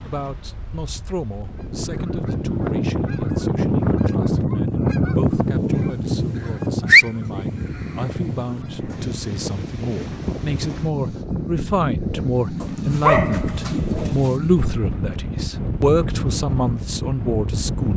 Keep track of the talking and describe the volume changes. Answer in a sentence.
The volume of the talking goes up.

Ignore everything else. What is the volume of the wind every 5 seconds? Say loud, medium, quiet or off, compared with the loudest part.
quiet, quiet, loud, loud.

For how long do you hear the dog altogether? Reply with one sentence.
The dog can be heard for 2 seconds in total.